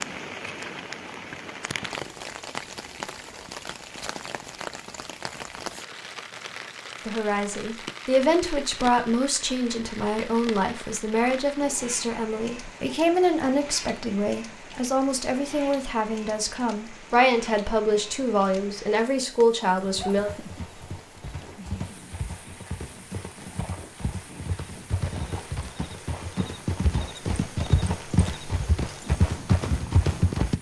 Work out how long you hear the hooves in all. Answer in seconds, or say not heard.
11 s.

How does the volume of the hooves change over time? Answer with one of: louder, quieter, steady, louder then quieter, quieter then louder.
louder.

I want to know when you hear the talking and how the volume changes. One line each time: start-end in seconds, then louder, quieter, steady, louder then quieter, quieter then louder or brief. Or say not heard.
7.0-20.3 steady.